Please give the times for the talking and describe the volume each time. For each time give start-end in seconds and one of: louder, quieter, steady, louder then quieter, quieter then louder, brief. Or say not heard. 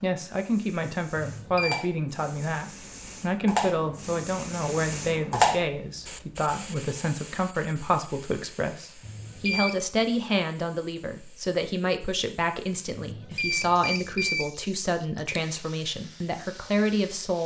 0.0-17.4 steady.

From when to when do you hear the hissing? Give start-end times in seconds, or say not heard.
0.1-17.4.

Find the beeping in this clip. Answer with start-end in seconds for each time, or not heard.
1.1-1.9, 9.0-9.8, 12.9-14.5.